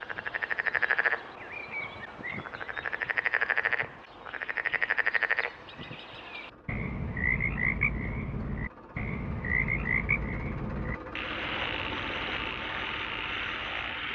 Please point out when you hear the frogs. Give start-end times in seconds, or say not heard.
0.0-14.1.